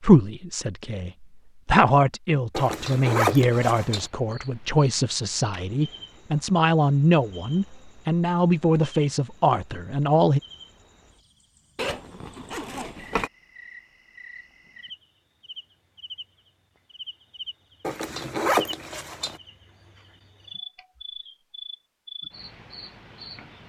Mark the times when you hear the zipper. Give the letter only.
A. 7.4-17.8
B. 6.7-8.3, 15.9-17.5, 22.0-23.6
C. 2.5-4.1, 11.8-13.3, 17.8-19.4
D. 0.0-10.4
C.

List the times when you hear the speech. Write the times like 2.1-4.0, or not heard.
0.0-10.4.